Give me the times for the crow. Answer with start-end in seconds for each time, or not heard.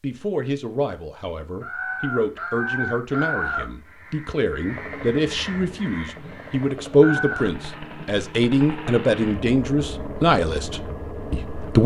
1.6-7.5.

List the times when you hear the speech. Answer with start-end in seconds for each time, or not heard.
0.0-11.8.